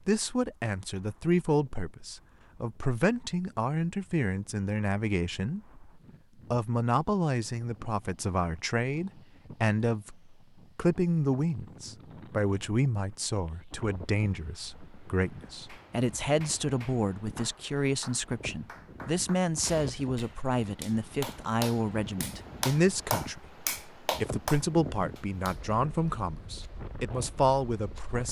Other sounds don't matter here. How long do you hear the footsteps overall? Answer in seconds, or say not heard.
not heard.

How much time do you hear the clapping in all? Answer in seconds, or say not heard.
10 s.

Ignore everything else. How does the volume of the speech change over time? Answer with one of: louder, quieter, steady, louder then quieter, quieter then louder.
steady.